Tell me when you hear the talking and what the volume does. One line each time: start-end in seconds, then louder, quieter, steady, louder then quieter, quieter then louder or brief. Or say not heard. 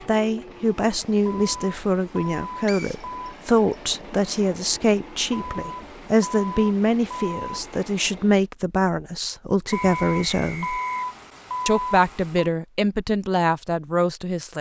0.1-10.8 steady
11.7-14.5 brief.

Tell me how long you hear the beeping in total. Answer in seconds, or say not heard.
7 s.